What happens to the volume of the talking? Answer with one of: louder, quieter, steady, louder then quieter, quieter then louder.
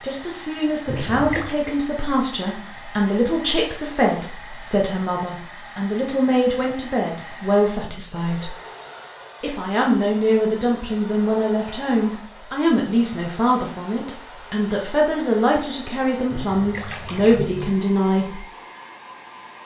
steady.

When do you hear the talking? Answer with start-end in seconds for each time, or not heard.
0.0-8.5, 9.4-18.4.